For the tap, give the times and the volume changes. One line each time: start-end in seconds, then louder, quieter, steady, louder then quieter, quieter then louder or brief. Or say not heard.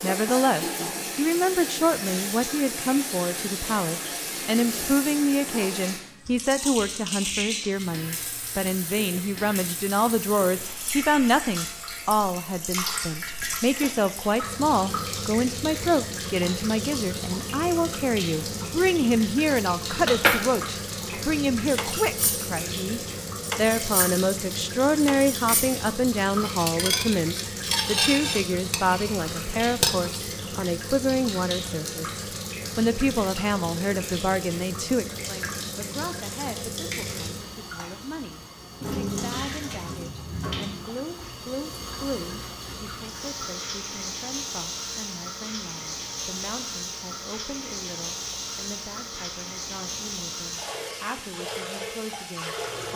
0.0-52.9 steady.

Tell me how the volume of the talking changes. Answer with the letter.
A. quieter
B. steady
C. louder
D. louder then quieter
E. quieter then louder
A.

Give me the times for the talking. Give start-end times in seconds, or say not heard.
0.0-52.9.